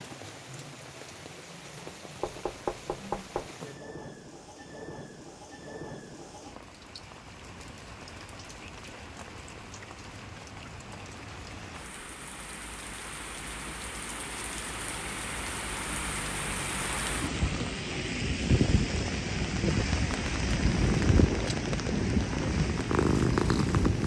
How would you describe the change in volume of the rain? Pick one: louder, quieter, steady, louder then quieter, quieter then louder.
louder.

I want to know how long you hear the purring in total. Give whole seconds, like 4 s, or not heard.
3 s.